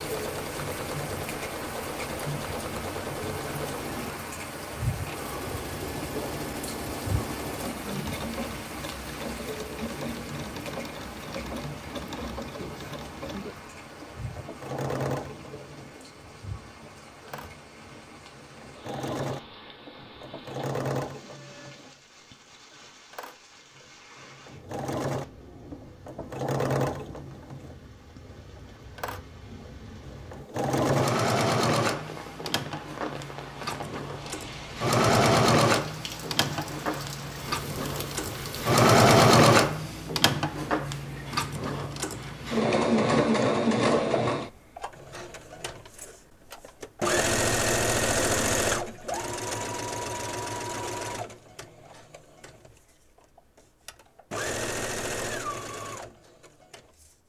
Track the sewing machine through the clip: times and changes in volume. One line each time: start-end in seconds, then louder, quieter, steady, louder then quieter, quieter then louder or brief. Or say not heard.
0.0-57.1 louder then quieter.